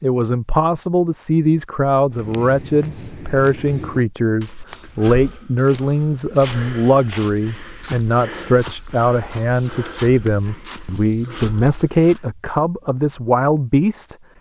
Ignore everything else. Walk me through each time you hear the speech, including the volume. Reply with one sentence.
You can hear the speech from 0.0 to 14.2 s, at a steady volume.